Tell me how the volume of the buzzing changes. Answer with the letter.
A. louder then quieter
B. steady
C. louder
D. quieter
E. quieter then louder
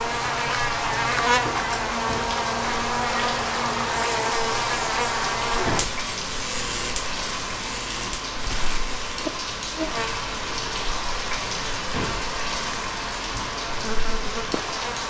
D.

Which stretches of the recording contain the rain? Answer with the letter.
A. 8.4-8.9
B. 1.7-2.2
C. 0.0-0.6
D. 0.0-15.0
D.